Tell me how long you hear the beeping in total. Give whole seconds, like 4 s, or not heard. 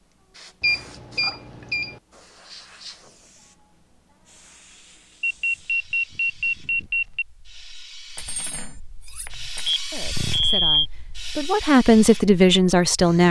5 s.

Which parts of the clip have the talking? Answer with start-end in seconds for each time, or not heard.
9.9-13.2.